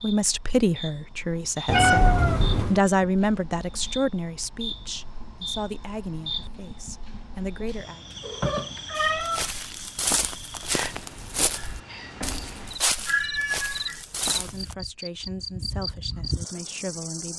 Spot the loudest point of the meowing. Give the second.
2 s.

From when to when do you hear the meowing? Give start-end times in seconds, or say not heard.
1.6-2.8, 8.2-9.5, 13.1-14.0.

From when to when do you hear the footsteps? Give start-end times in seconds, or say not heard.
8.9-14.8.